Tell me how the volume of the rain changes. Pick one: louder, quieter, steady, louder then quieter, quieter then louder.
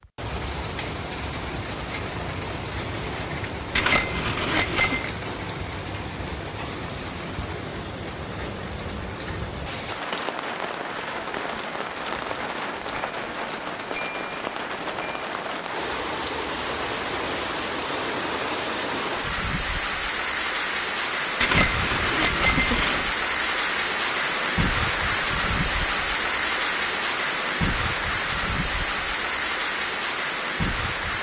louder.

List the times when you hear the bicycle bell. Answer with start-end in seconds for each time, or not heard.
3.8-5.0, 12.8-15.3, 21.4-23.1.